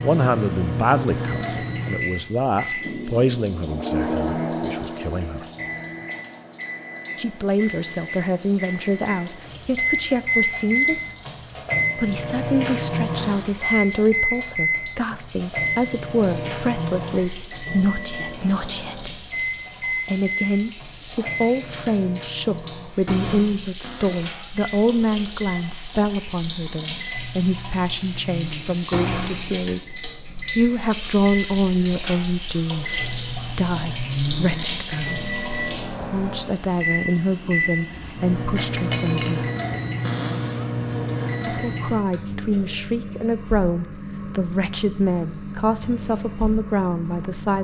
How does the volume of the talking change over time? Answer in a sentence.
The volume of the talking stays about the same.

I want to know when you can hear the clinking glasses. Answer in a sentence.
You can hear the clinking glasses from 37.9 to 39.5 s.